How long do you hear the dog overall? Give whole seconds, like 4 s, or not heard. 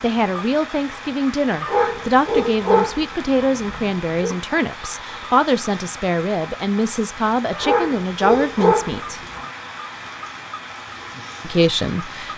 5 s.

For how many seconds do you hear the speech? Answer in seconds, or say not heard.
10 s.